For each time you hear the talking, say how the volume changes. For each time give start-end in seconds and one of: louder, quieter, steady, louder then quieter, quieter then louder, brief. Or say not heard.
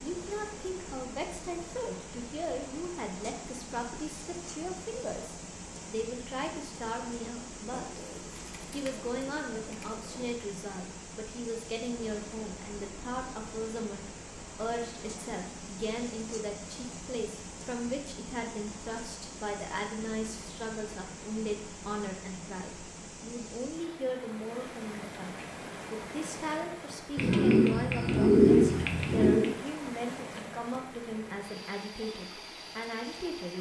0.0-8.0 steady
8.7-33.5 steady.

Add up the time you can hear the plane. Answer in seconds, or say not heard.
not heard.